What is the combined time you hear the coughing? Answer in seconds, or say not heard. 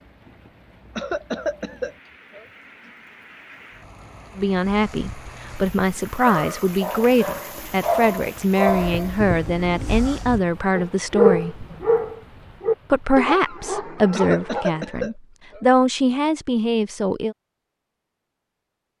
3 s.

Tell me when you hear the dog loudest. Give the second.
11 s.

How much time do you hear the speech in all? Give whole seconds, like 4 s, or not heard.
12 s.